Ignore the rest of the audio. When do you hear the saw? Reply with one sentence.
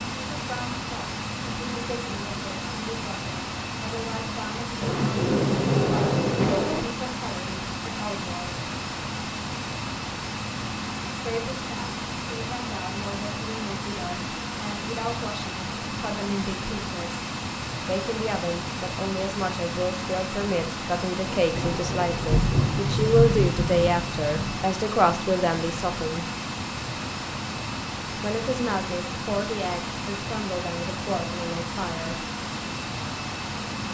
The saw can't be heard in this clip.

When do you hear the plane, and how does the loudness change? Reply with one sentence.
You can hear the plane from 0.0 to 33.8 s, at a steady volume.